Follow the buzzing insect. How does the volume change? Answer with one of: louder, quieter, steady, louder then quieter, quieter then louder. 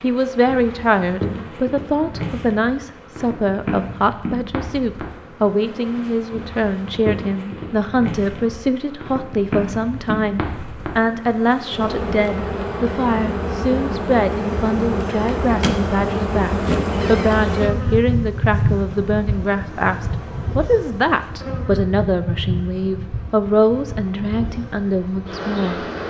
louder then quieter.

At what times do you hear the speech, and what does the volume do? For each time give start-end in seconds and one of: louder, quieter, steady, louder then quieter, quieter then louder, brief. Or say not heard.
0.0-25.9 steady.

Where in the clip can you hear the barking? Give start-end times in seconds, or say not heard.
not heard.